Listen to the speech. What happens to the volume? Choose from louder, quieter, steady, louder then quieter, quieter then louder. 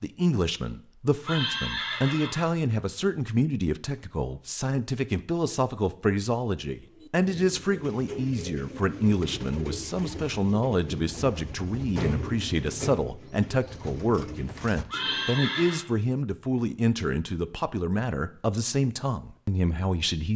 steady.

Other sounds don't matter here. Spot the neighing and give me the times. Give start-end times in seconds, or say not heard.
1.2-2.5, 14.8-15.8.